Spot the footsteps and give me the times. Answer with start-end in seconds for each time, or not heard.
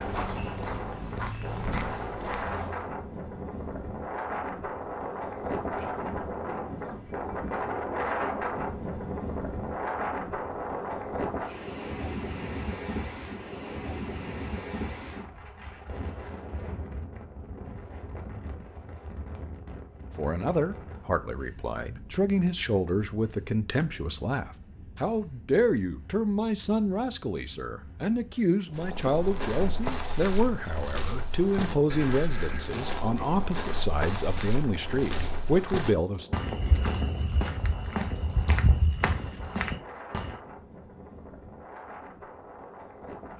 0.0-2.9, 28.8-40.4.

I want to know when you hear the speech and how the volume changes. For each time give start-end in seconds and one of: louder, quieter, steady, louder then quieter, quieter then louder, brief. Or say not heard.
20.1-36.3 steady.